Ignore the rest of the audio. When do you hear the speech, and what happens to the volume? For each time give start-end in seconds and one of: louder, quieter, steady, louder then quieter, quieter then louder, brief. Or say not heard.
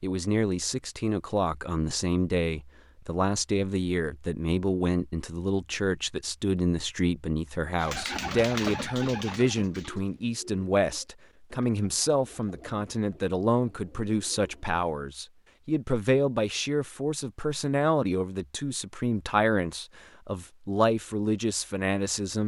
0.0-22.4 steady.